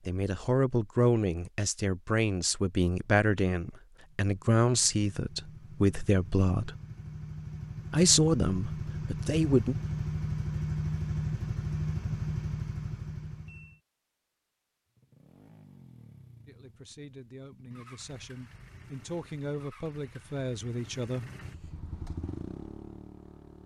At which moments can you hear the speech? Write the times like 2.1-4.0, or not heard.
0.1-6.8, 7.9-9.8, 16.4-21.3.